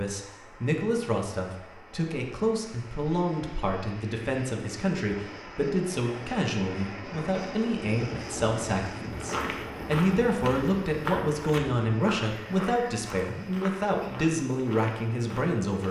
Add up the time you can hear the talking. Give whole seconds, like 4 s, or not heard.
16 s.